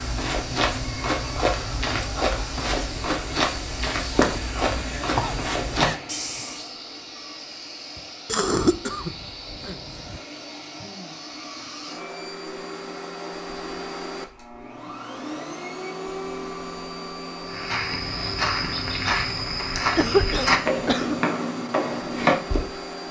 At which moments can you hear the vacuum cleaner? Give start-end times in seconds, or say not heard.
0.0-23.0.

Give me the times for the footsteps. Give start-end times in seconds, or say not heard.
0.0-6.7, 17.4-22.7.